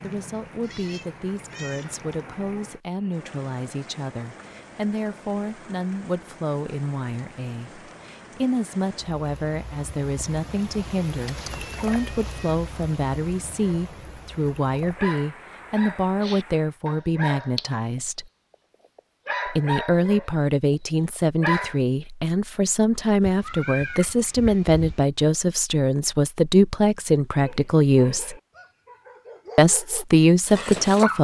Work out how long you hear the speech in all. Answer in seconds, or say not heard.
29 s.